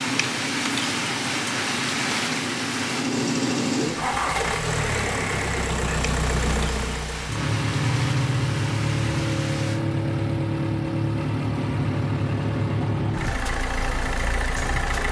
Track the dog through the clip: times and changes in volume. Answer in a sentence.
You can't hear the dog here.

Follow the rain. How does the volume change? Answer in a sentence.
The loudness of the rain goes down.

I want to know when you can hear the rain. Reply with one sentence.
You can hear the rain from 0.0 to 9.8 s.